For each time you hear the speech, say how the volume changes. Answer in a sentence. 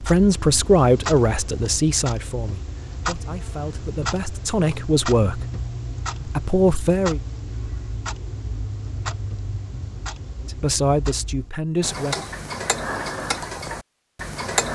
The speech can be heard from 0.0 to 5.5 s, getting quieter then louder; briefly from 6.2 to 7.2 s; and briefly from 10.4 to 12.2 s.